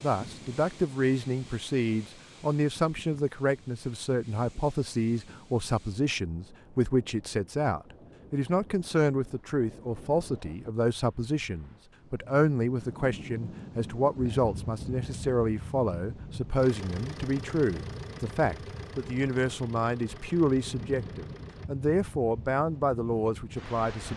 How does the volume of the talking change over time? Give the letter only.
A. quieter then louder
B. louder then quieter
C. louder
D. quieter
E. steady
E.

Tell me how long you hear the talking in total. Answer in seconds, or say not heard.
24 s.